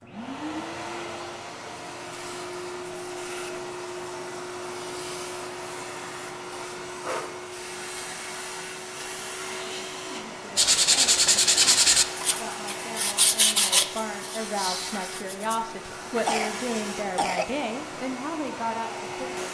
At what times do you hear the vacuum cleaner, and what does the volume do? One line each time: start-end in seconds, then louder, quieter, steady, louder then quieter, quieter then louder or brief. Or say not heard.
0.0-19.4 steady.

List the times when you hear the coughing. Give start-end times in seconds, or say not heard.
16.2-17.6.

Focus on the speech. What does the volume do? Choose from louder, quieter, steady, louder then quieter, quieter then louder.
louder.